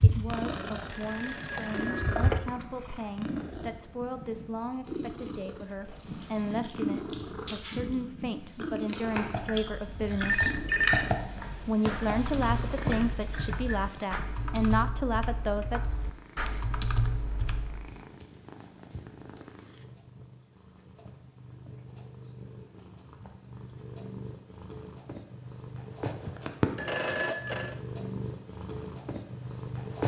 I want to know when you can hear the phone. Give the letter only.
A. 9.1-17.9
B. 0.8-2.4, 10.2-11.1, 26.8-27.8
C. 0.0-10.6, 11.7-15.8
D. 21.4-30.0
B.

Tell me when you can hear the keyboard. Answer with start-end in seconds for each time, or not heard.
9.1-17.9.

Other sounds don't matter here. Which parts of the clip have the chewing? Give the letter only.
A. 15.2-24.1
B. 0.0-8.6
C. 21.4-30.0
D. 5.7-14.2
D.